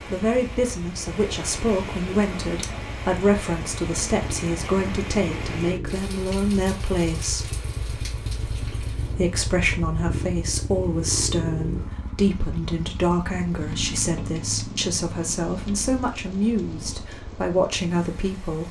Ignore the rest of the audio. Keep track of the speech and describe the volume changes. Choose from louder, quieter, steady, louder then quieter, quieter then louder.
steady.